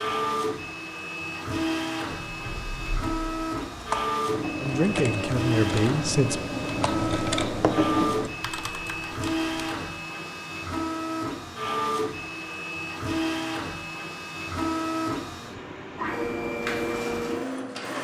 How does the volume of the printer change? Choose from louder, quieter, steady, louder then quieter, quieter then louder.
steady.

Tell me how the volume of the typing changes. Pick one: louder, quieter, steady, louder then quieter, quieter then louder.
louder.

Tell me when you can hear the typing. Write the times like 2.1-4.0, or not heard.
2.1-9.5.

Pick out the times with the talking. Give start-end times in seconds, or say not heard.
4.6-6.4.